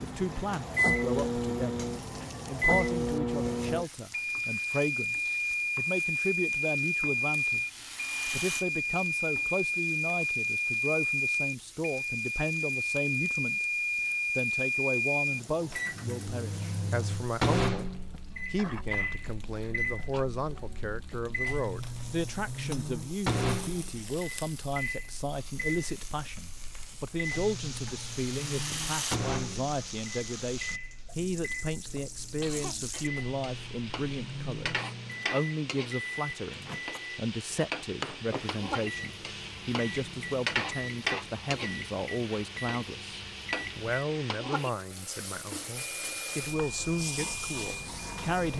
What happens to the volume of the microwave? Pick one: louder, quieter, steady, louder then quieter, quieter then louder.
quieter.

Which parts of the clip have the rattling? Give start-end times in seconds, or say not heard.
7.3-8.7, 27.8-29.2.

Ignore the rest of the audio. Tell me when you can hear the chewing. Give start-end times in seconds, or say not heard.
not heard.